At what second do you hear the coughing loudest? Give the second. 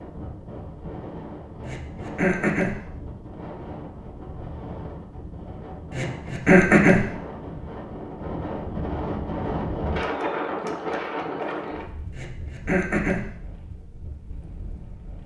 7 s.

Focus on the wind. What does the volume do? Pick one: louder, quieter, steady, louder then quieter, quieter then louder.
louder then quieter.